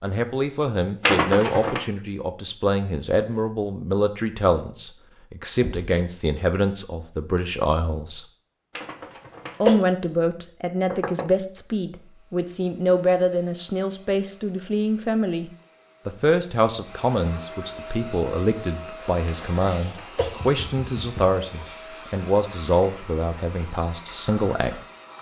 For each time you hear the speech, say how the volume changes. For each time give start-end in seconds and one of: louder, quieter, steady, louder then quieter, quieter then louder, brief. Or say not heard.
0.0-8.2 steady
9.6-24.8 steady.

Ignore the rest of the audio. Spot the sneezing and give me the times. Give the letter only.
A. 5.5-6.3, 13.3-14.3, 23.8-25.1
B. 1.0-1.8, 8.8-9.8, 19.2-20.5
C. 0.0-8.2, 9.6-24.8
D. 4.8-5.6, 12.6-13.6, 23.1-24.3
B.